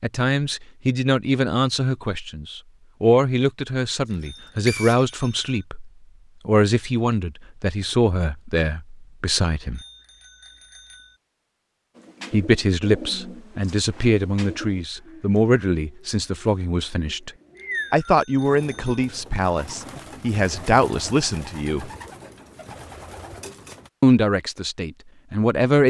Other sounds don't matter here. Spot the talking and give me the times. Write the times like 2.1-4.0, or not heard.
0.0-9.8, 12.3-17.3, 17.9-21.9, 24.0-25.8.